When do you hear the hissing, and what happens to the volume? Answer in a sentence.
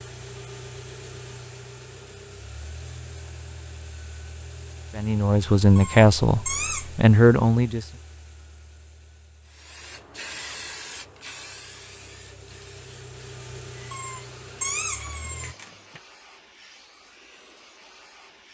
The hissing can be heard from 9.4 to 18.4 s, getting quieter.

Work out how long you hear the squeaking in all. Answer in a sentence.
You can hear the squeaking for 3 seconds altogether.